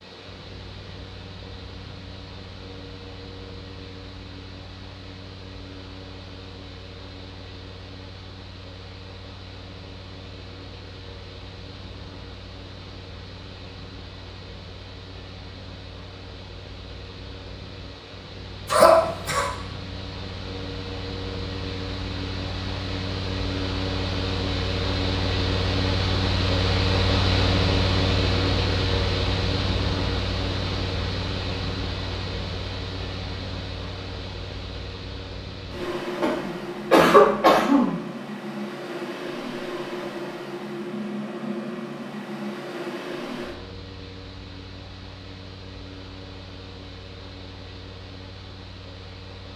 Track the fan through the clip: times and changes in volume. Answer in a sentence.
You can hear the fan from 0.0 to 49.5 s, getting louder then quieter.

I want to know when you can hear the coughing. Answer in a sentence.
The coughing can be heard from 18.6 to 19.5 s and from 36.2 to 38.0 s.